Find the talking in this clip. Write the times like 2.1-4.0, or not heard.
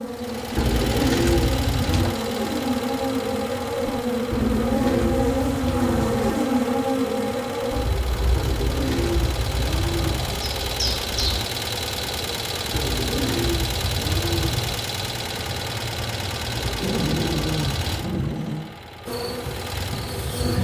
not heard.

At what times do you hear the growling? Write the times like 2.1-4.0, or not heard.
16.8-18.8.